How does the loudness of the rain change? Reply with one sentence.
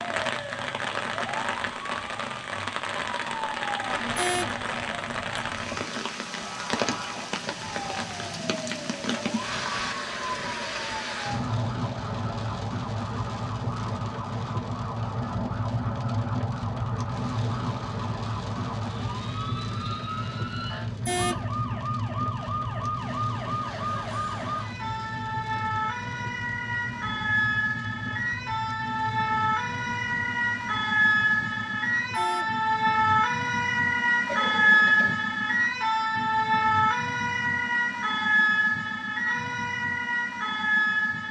The loudness of the rain goes down.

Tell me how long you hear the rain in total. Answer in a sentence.
You can hear the rain for 32 seconds altogether.